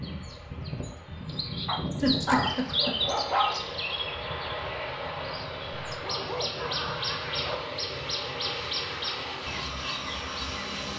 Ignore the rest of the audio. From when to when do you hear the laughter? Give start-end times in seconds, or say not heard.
2.0-3.0.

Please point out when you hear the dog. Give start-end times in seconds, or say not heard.
1.6-3.6, 5.8-7.8.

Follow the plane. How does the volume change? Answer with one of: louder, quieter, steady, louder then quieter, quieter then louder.
steady.